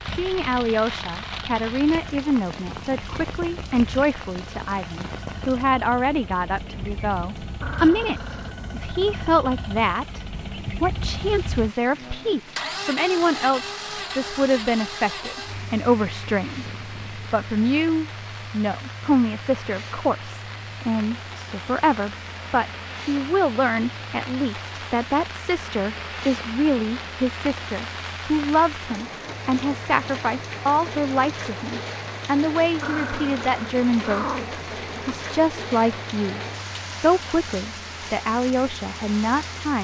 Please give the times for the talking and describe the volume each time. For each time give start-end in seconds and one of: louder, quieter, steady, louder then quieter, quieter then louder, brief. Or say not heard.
0.1-39.7 steady.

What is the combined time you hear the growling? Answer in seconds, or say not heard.
3 s.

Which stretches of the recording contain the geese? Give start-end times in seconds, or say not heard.
not heard.